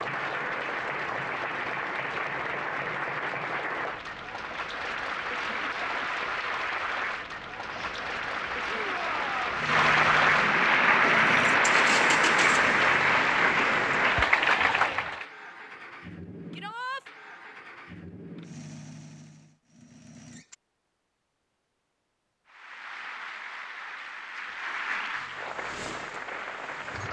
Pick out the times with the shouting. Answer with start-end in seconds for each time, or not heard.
8.7-9.6, 16.5-17.1.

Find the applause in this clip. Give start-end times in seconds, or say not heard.
0.0-15.2, 22.4-27.0.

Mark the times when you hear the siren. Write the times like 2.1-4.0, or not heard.
not heard.